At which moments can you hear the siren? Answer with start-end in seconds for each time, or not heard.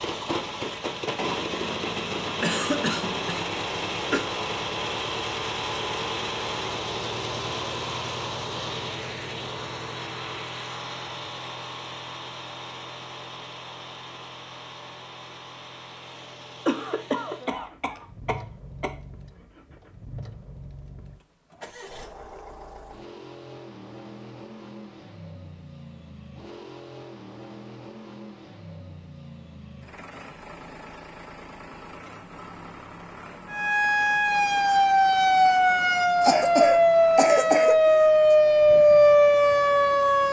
33.5-40.2.